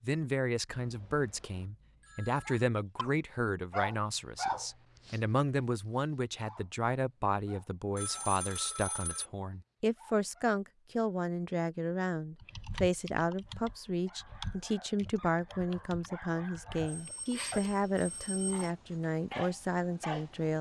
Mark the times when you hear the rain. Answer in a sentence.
The rain can't be heard in this clip.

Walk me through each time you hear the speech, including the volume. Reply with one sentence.
You can hear the speech from 0.0 to 20.5 s, at a steady volume.